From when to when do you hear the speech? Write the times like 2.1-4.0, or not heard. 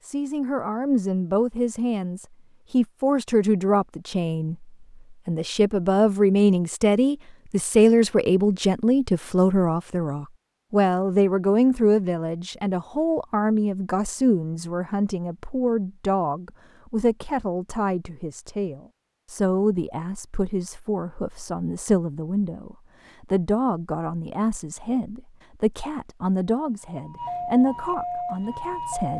0.0-29.1.